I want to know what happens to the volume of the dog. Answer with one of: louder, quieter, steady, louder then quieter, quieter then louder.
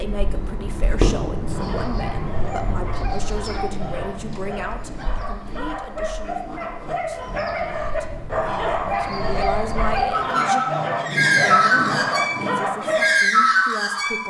louder.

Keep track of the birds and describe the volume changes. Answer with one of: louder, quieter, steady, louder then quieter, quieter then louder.
quieter then louder.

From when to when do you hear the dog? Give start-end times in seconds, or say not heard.
1.5-13.2.